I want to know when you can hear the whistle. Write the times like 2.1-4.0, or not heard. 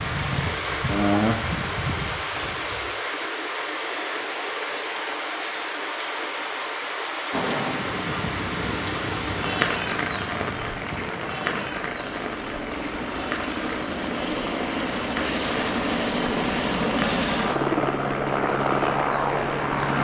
not heard.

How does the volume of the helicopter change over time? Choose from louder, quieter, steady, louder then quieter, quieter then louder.
louder.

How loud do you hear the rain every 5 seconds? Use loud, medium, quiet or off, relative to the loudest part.
loud, loud, medium, medium.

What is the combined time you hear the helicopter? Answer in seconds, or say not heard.
13 s.